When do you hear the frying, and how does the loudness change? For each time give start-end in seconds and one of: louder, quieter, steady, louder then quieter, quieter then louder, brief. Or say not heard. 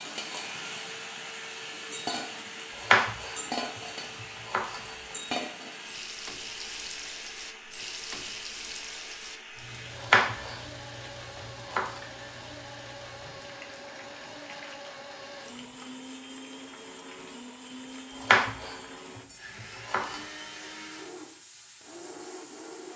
0.0-22.9 quieter.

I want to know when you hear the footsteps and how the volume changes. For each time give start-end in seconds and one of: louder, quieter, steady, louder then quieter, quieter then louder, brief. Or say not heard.
not heard.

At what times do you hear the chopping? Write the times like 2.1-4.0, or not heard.
2.8-5.2, 9.9-12.0, 18.1-20.2.